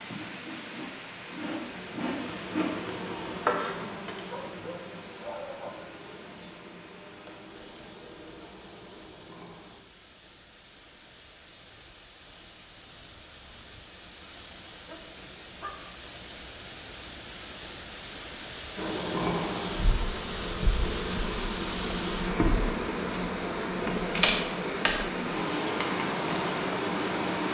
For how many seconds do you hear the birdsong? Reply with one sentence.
The birdsong can't be heard in this clip.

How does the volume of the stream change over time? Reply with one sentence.
The loudness of the stream goes down, then up.